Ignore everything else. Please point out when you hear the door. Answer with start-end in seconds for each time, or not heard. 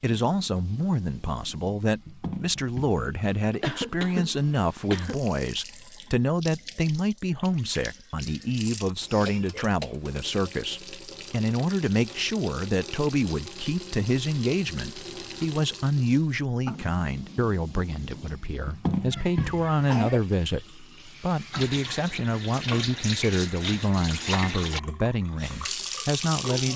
not heard.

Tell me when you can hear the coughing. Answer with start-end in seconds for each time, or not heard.
3.5-5.2, 9.2-9.9, 19.1-20.2.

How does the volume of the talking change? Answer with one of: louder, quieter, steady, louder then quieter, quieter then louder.
steady.